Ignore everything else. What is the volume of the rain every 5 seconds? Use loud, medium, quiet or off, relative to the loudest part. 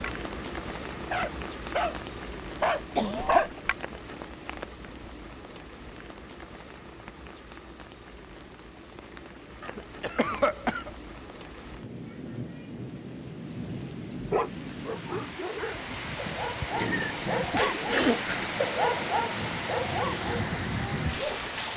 medium, quiet, medium, loud, loud.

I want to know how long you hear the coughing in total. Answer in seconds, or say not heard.
4 s.